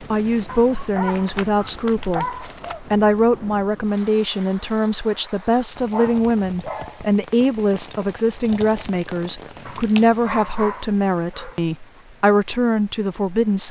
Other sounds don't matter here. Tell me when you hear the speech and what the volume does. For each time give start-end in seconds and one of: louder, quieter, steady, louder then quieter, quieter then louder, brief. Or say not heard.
0.1-13.6 steady.